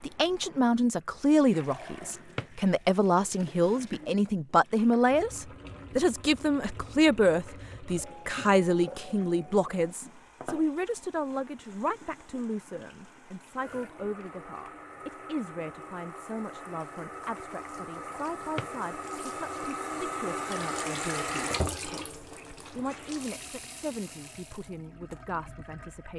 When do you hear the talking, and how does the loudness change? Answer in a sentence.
You can hear the talking from 0.0 to 26.1 s, getting quieter.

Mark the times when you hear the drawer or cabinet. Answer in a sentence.
You can hear the drawer or cabinet from 2.1 to 2.6 s and from 18.4 to 18.8 s.